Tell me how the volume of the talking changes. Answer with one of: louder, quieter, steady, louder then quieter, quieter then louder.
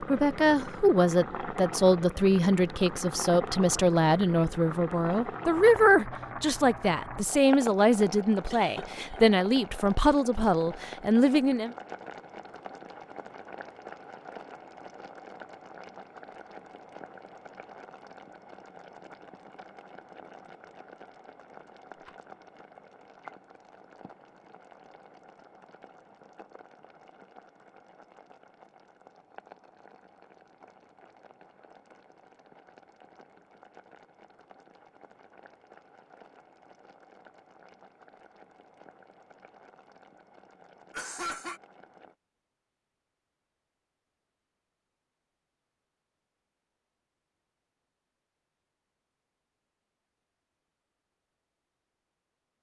steady.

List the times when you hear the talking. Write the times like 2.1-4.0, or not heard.
0.0-11.8.